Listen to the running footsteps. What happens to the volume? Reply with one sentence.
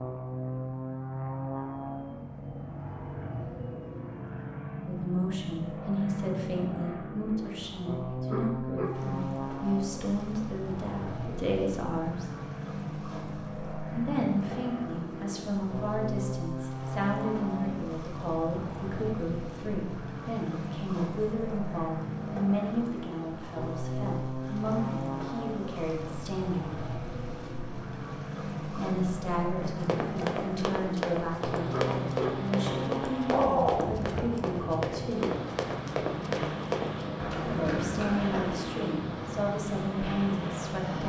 The loudness of the running footsteps stays about the same.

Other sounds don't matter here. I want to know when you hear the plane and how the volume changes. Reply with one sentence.
You can hear the plane from 0.0 to 41.0 s, at a steady volume.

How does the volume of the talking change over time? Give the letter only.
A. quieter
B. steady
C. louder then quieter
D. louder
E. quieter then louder
B.